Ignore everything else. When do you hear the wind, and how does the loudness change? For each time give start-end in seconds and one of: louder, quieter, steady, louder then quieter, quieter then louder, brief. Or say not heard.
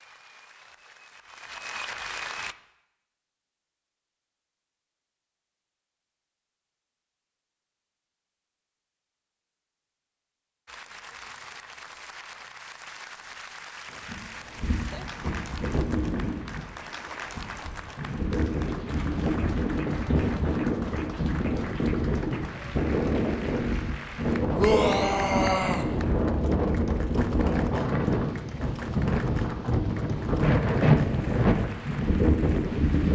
13.9-33.1 louder.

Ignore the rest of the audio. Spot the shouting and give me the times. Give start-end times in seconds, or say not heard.
24.6-25.9.